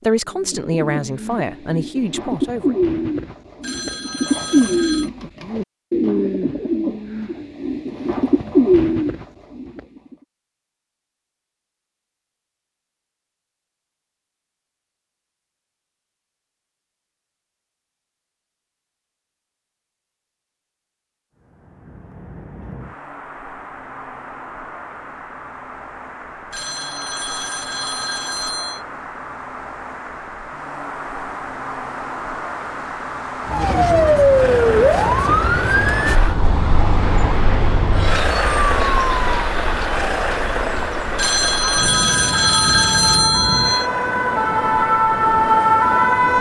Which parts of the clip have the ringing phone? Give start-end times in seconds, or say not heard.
3.6-5.1, 26.5-28.9, 41.1-43.9.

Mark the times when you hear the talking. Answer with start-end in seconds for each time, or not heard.
0.0-2.8.